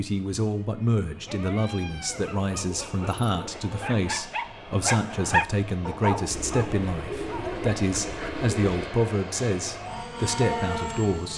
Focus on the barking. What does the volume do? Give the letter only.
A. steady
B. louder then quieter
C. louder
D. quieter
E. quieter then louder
B.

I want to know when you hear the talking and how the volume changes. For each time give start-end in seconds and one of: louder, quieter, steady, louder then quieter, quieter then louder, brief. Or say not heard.
0.0-11.3 steady.